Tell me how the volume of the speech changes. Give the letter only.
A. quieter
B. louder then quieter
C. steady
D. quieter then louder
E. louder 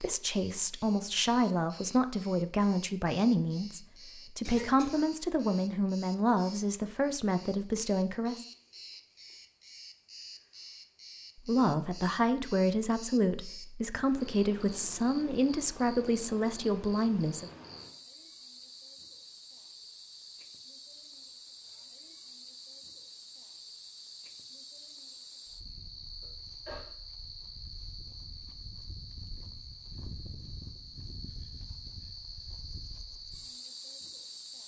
C.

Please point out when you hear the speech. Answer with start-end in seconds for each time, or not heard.
0.0-8.4, 11.4-17.5.